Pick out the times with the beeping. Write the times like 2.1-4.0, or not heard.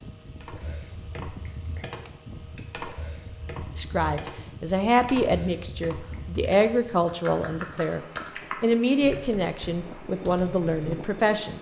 not heard.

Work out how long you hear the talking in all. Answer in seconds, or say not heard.
8 s.